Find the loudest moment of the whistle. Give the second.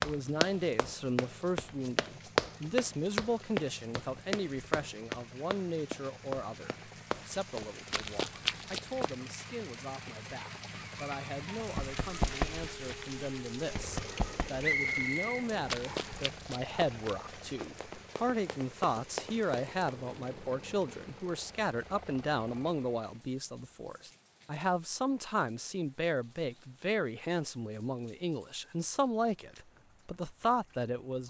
15 s.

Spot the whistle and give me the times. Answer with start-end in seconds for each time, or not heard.
14.6-16.2.